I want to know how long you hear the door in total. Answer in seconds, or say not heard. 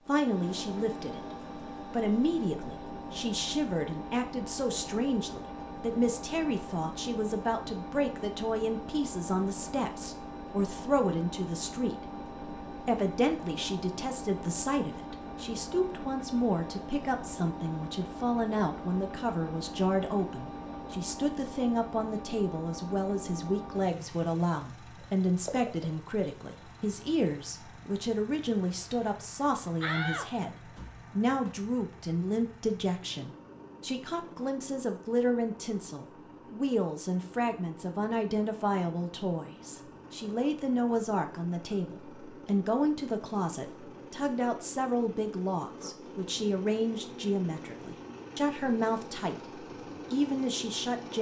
2 s.